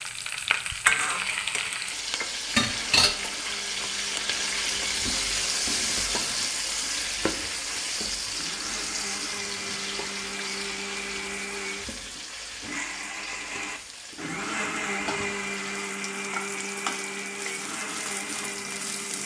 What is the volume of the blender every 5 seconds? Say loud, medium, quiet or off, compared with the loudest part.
medium, medium, loud, loud.